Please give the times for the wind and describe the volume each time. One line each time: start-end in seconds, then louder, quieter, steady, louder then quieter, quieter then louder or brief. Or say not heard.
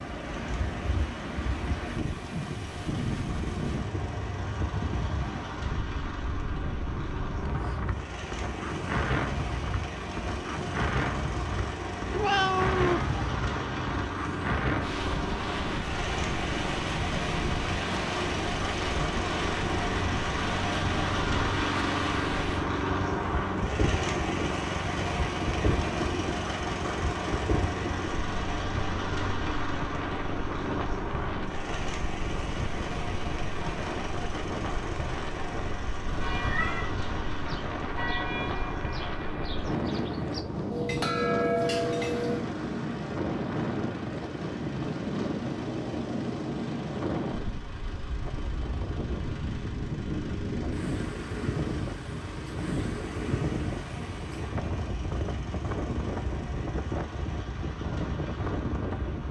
0.0-59.2 steady.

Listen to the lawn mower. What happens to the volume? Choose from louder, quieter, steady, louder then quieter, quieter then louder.
louder then quieter.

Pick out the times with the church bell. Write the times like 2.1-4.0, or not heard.
36.1-42.5.